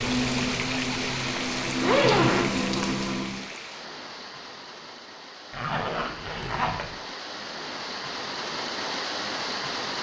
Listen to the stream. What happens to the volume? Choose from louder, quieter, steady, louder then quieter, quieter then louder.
quieter then louder.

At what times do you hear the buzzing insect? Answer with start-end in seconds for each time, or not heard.
0.0-3.5.